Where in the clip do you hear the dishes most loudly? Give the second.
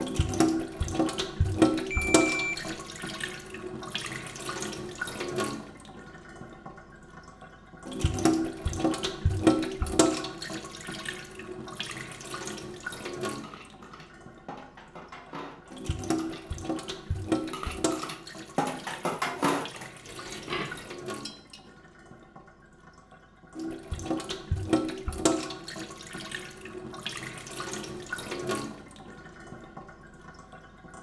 19 s.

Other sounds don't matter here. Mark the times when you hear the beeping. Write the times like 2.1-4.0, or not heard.
1.9-2.8.